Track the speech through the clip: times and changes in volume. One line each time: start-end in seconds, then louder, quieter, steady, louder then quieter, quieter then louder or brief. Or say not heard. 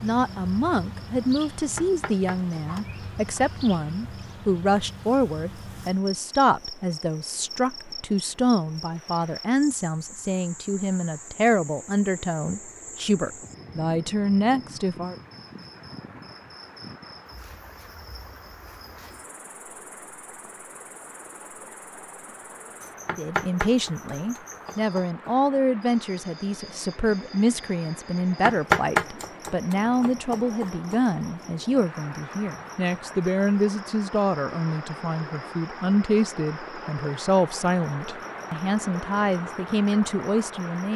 0.0-15.2 steady
23.1-40.9 steady.